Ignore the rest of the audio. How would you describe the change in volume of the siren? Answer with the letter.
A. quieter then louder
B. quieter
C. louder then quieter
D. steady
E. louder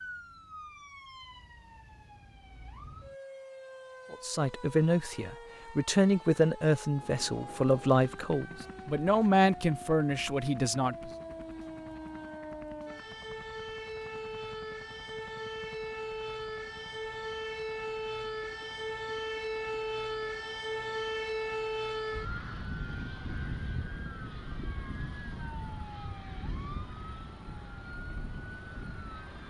C.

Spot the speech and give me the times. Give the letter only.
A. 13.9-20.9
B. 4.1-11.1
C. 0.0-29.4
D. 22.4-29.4
B.